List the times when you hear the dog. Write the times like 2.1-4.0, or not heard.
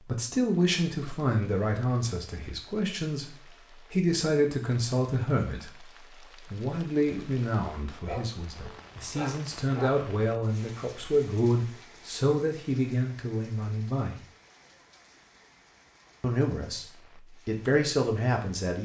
8.1-10.1.